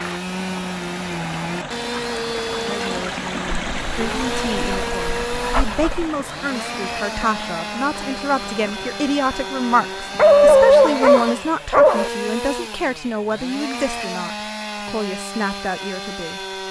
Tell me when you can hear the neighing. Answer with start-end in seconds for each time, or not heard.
not heard.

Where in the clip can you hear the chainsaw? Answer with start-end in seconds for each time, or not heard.
0.0-16.6.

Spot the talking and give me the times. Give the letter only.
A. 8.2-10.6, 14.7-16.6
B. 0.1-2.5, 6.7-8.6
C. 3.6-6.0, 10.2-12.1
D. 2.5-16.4
D.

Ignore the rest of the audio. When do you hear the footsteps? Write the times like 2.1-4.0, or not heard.
not heard.